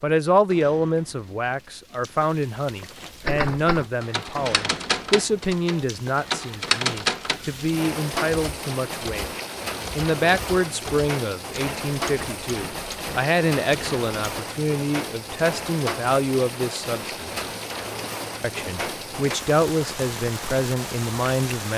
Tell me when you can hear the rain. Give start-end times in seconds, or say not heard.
0.0-21.7.